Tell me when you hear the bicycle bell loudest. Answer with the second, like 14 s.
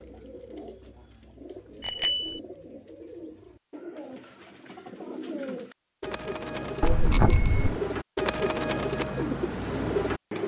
7 s.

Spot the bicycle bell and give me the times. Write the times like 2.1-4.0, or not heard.
1.8-2.4, 6.8-7.8.